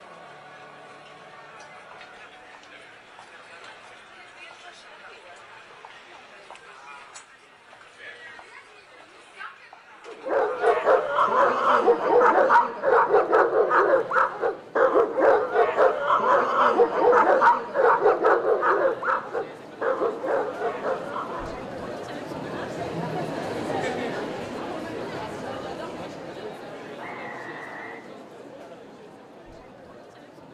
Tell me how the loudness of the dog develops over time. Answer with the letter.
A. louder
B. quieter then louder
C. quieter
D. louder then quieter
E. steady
C.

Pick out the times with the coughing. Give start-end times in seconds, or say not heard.
not heard.